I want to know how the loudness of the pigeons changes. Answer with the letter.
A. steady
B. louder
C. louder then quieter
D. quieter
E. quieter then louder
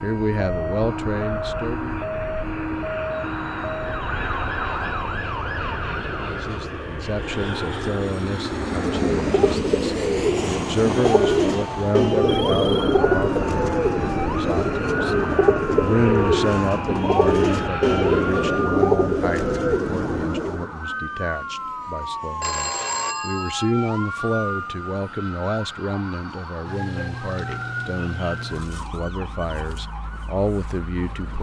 A.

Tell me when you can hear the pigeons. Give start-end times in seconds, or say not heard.
8.6-20.7.